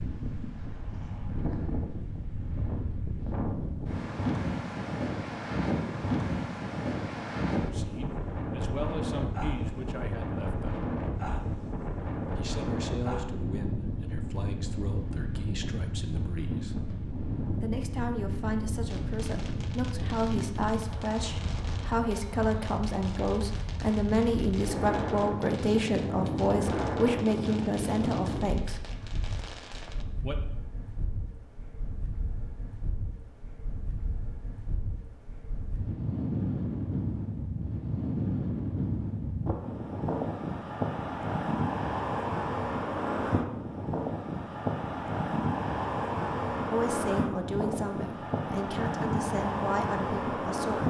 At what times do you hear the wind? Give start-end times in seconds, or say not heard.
0.0-50.8.